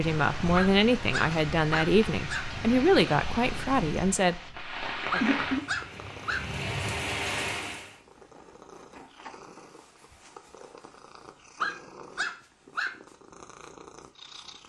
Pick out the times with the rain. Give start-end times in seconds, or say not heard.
0.0-7.9.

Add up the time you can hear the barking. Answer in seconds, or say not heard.
5 s.